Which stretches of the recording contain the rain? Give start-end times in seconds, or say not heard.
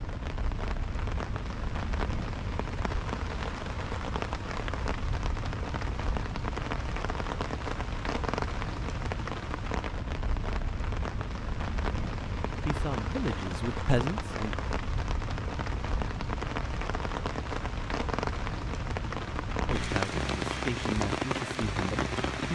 0.0-22.4.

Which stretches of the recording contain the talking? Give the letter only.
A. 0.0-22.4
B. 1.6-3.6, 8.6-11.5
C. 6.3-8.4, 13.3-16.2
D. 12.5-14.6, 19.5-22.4
D.